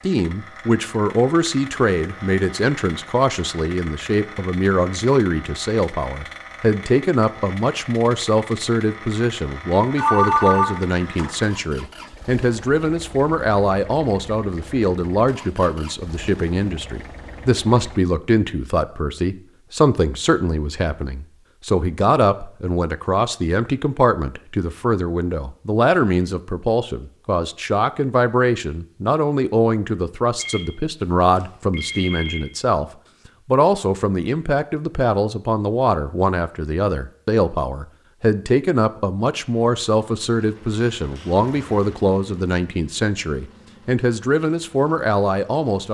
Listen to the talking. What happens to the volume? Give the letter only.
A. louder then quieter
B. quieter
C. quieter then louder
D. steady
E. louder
D.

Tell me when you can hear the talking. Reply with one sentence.
The talking can be heard from 0.1 to 32.9 s and from 33.5 to 45.8 s.